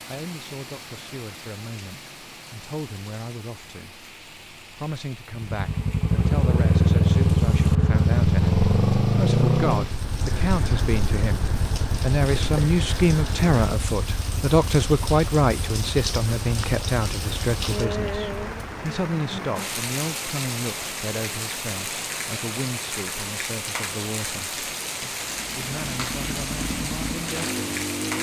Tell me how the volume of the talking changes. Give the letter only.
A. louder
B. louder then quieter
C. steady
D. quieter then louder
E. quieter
B.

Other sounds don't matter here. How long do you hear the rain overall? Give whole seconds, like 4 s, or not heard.
28 s.